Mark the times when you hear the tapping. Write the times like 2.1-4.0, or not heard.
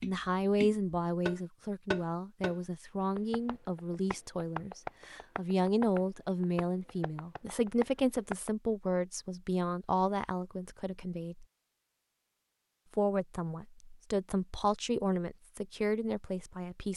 0.0-8.5.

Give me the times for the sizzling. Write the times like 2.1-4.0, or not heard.
not heard.